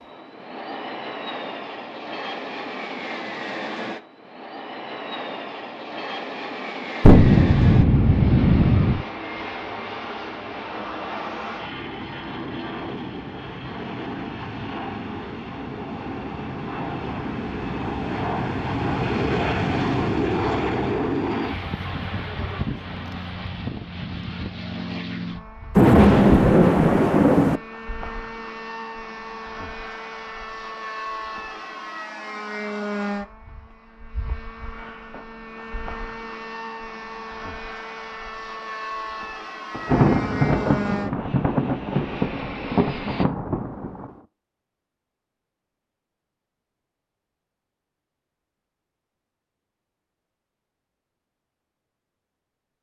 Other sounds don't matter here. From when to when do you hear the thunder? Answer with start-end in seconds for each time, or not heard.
7.0-9.1, 25.8-27.6, 39.8-44.1.